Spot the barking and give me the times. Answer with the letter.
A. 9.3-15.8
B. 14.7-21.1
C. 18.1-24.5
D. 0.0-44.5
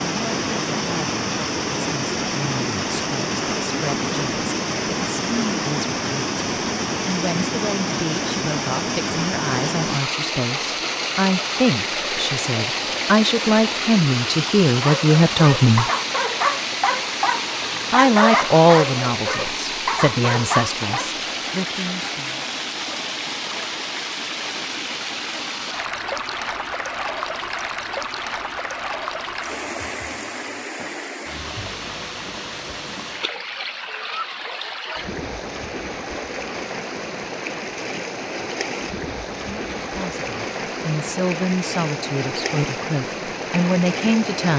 B.